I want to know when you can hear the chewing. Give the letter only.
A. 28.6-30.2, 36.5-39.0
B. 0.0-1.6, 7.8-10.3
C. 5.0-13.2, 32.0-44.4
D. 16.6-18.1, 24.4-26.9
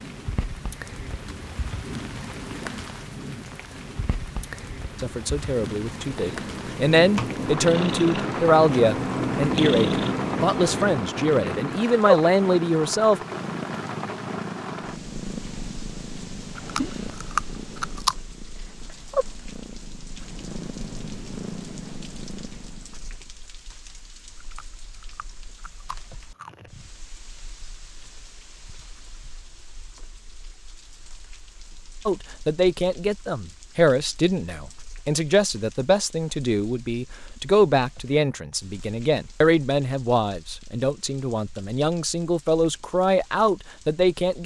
D.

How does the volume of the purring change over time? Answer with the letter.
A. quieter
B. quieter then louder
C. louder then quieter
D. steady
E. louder
A.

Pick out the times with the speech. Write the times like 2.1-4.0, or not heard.
5.0-13.2, 32.0-44.4.